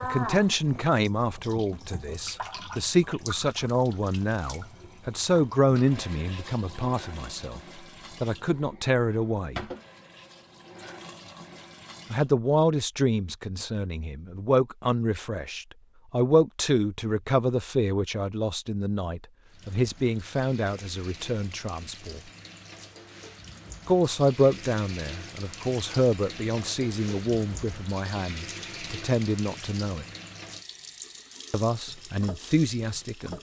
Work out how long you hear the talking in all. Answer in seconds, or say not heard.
27 s.